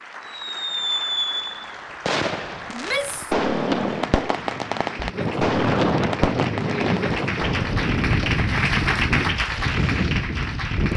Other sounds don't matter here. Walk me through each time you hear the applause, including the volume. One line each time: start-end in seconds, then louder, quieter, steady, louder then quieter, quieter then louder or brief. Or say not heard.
0.0-10.9 louder.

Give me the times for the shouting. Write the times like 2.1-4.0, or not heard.
2.7-3.4.